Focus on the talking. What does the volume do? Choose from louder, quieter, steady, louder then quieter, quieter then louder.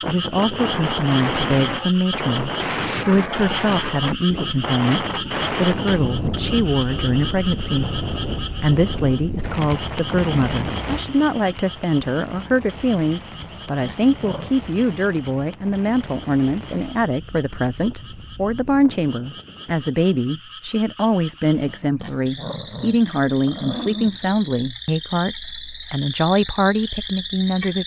steady.